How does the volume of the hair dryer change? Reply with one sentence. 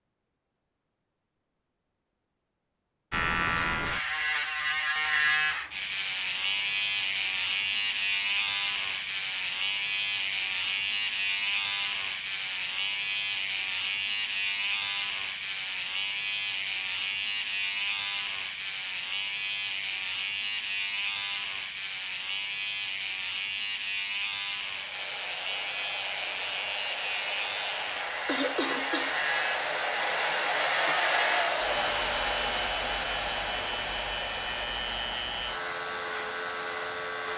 The loudness of the hair dryer goes up, then down.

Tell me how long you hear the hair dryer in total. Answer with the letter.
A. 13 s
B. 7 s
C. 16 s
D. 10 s
A.